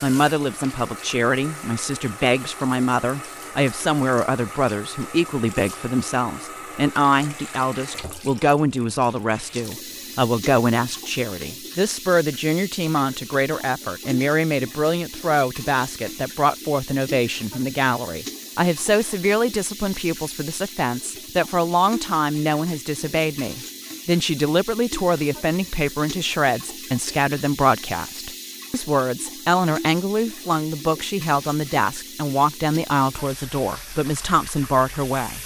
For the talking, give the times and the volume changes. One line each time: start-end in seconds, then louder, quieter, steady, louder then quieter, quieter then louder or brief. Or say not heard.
0.0-35.4 steady.